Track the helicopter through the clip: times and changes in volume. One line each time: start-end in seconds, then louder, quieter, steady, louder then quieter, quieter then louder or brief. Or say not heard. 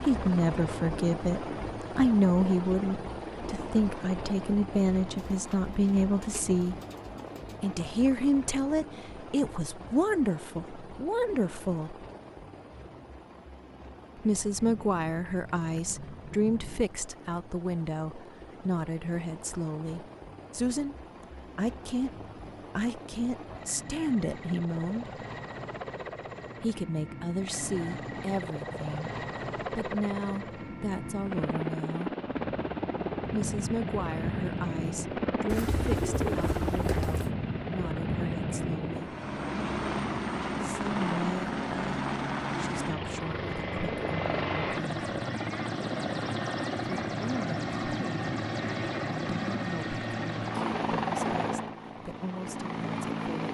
0.0-53.4 quieter then louder.